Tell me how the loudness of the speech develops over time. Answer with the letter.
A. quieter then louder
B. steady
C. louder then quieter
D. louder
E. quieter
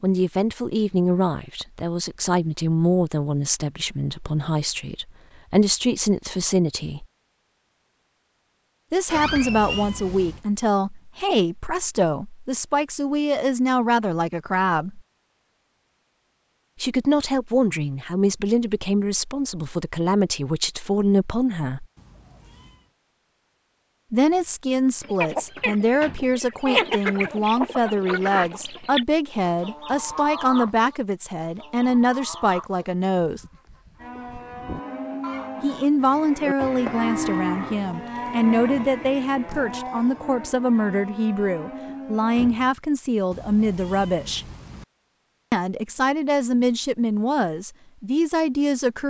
B.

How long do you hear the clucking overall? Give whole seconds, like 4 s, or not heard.
11 s.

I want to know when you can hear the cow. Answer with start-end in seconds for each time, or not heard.
34.0-42.5.